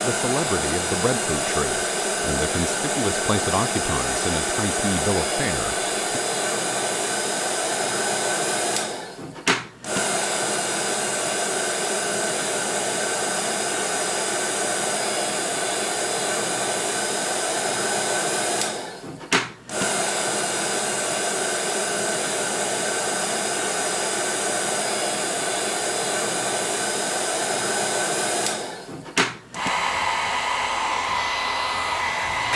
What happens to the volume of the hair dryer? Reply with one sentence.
The loudness of the hair dryer stays about the same.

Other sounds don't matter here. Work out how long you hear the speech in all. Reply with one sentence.
You can hear the speech for 6 seconds altogether.